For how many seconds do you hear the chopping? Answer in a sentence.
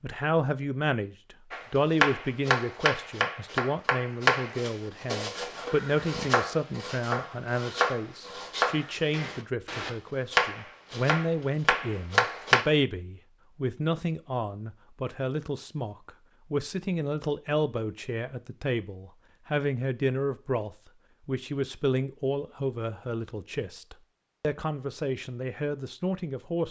The chopping can be heard for 11 seconds in total.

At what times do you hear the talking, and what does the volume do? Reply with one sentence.
The talking can be heard from 0.0 to 26.6 s, at a steady volume.